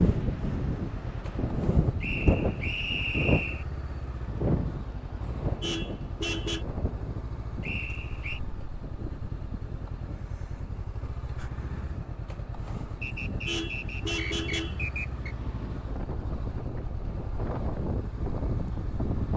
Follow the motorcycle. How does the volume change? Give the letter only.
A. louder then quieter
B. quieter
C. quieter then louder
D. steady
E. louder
D.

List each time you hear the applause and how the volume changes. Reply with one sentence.
The applause can't be heard in this clip.